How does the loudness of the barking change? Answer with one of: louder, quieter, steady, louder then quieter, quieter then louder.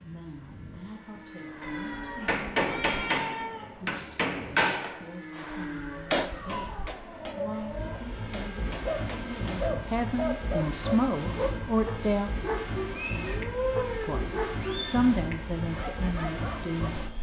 quieter.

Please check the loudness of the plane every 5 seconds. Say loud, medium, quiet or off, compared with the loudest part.
medium, loud, loud, loud.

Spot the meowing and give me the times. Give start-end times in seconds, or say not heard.
1.6-3.9, 6.2-8.0, 13.1-15.1.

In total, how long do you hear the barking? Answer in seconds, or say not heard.
8 s.